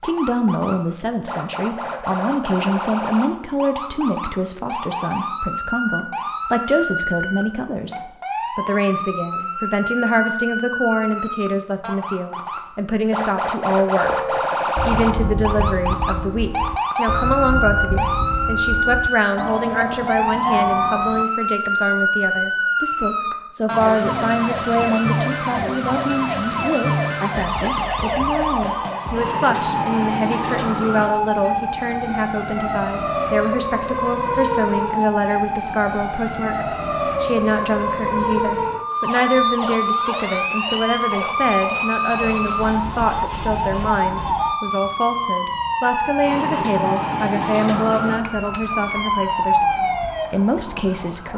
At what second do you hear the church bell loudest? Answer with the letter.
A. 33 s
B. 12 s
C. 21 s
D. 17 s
C.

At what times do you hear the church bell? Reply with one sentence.
You can hear the church bell from 14.0 to 21.2 s.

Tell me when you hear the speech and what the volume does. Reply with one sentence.
The speech can be heard from 0.0 to 51.3 s, at a steady volume.